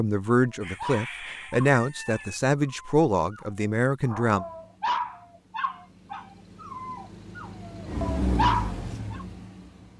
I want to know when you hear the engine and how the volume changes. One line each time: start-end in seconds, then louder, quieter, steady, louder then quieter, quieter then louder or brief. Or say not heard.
4.2-9.9 louder then quieter.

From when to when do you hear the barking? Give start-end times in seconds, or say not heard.
0.3-9.2.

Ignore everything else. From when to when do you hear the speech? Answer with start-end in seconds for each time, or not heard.
0.0-4.5.